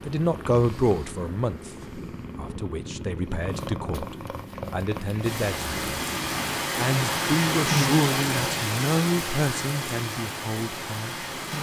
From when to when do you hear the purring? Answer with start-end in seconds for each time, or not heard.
0.0-6.5.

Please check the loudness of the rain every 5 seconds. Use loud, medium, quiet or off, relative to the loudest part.
off, loud, medium.